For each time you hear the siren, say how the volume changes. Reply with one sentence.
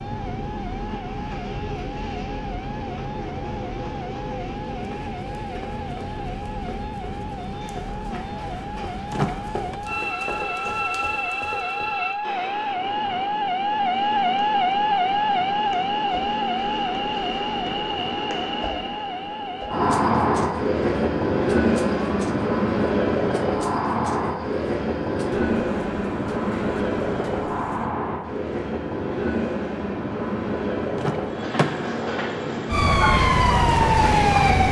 You can hear the siren from 0.0 to 27.9 s, getting louder then quieter; and briefly from 32.6 to 34.6 s.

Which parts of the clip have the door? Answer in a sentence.
You can hear the door from 9.1 to 9.8 s and from 30.9 to 32.0 s.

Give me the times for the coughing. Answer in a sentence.
The coughing can't be heard in this clip.